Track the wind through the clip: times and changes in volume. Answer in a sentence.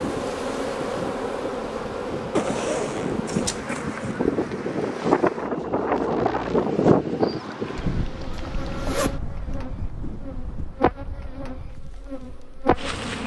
You can hear the wind from 0.0 to 13.2 s, getting louder then quieter.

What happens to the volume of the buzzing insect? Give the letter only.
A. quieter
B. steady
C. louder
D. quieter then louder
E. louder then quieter
D.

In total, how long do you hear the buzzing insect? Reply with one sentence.
You can hear the buzzing insect for 13 seconds altogether.